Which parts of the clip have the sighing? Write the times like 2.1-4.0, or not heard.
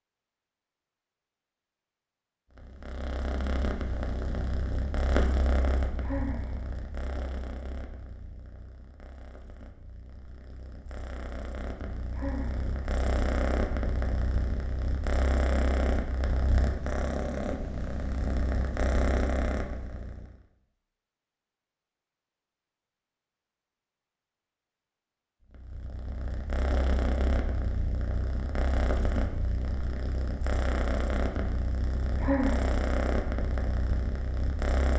6.0-6.5, 12.1-12.6, 32.1-32.7.